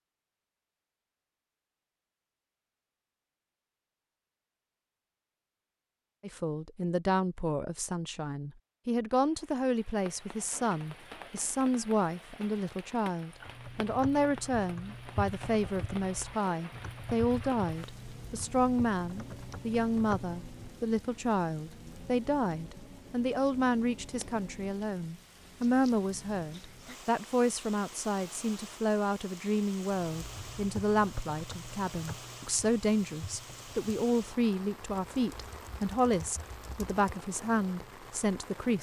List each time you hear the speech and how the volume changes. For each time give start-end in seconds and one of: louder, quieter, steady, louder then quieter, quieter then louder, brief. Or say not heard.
6.2-38.7 steady.